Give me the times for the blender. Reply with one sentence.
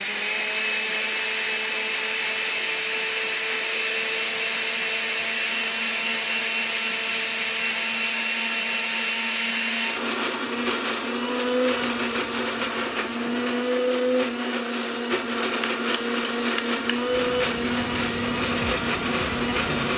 You can hear the blender from 0.0 to 19.9 s.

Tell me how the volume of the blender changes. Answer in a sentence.
The loudness of the blender stays about the same.